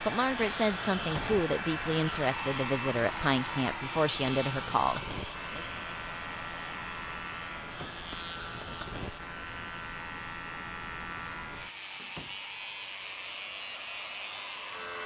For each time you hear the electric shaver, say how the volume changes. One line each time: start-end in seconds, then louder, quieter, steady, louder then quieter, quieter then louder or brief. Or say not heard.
0.0-15.0 steady.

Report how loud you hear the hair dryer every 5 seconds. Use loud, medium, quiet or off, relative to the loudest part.
loud, medium, medium.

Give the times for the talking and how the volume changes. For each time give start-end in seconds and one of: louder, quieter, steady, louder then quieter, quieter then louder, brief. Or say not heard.
0.0-5.7 steady.